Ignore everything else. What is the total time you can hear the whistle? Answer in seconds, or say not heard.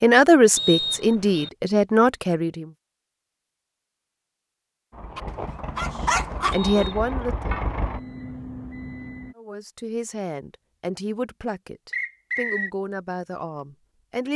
2 s.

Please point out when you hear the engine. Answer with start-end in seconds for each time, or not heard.
4.9-9.3.